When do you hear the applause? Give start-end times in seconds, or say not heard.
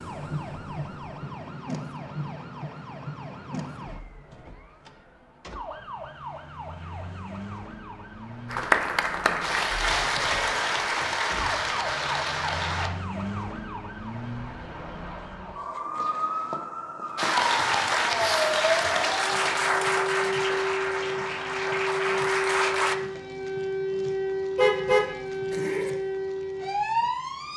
8.4-12.9, 17.1-22.9.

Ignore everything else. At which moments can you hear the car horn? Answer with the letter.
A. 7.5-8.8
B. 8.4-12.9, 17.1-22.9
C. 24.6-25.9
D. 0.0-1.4
C.